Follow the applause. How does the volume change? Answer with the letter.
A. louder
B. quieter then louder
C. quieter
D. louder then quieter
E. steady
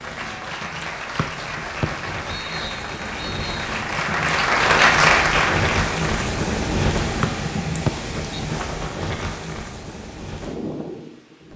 A.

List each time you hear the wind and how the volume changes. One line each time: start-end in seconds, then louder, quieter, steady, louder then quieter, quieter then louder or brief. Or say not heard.
0.0-11.5 louder then quieter.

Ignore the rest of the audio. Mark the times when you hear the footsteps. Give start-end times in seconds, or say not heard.
not heard.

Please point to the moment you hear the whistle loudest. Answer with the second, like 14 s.
8 s.